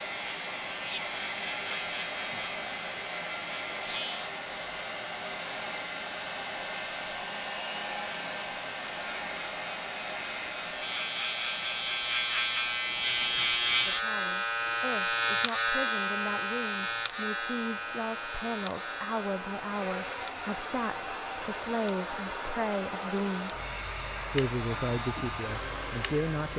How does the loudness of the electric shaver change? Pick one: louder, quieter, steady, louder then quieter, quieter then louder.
louder then quieter.